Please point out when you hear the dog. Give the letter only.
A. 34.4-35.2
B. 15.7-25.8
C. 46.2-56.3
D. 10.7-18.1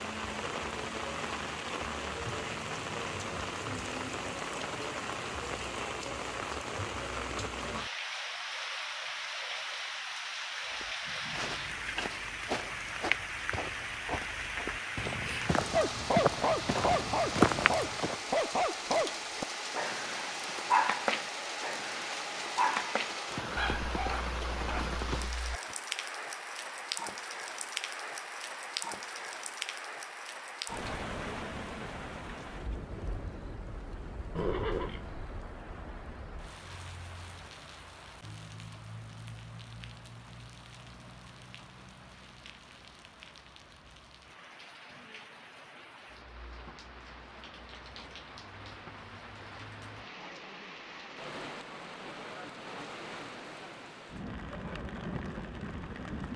B.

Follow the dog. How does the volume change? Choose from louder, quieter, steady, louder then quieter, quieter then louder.
quieter.